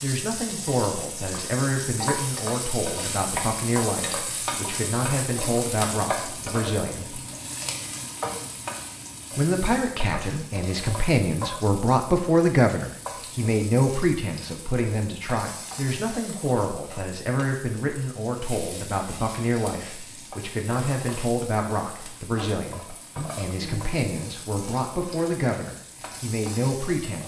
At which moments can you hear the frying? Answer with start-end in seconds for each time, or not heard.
0.0-27.2.